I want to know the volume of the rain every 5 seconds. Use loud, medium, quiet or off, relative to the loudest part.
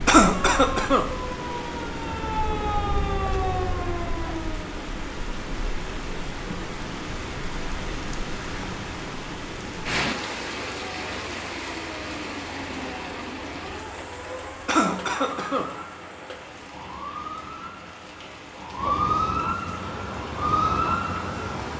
loud, loud, loud, medium, loud.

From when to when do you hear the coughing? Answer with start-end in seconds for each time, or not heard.
0.1-1.4, 14.7-15.7.